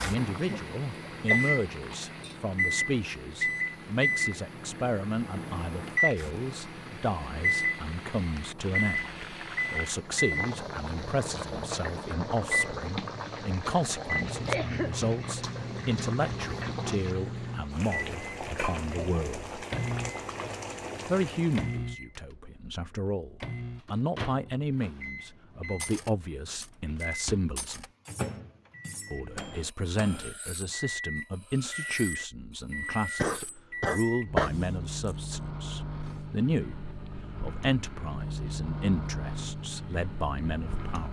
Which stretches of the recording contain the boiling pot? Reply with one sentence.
You can hear the boiling pot from 0.0 to 21.8 s.